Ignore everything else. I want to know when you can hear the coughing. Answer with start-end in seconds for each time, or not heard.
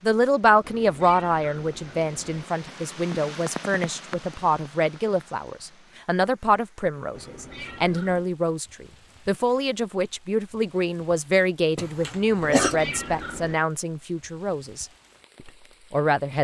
11.8-12.8.